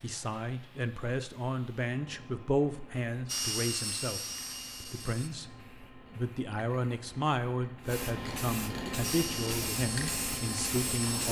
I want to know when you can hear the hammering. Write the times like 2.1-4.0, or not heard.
not heard.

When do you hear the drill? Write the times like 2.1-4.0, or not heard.
3.2-5.3, 9.0-11.2.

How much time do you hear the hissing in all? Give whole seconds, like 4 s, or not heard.
11 s.